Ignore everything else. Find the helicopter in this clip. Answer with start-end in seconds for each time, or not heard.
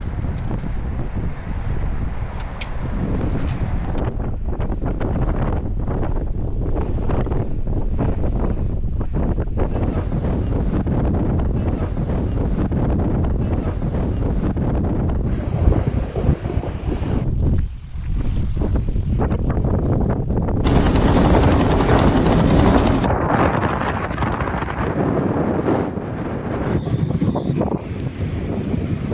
20.6-23.1.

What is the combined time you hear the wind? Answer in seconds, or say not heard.
29 s.